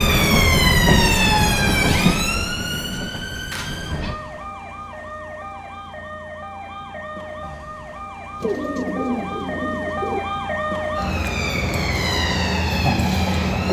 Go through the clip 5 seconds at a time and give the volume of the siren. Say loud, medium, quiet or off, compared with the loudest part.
loud, medium, loud.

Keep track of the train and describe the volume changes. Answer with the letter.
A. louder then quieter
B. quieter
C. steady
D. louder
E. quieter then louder
B.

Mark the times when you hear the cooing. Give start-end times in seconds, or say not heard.
8.4-10.2.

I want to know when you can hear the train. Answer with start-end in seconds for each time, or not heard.
0.0-4.2.